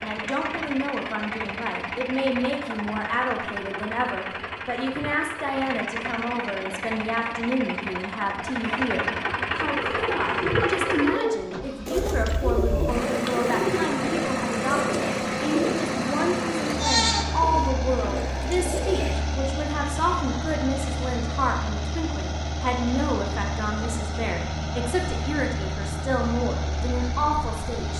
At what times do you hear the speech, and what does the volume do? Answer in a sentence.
You can hear the speech from 0.0 to 27.9 s, at a steady volume.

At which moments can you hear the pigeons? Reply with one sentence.
The pigeons can be heard from 9.7 to 19.1 s.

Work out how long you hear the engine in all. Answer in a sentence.
The engine can be heard for 28 seconds in total.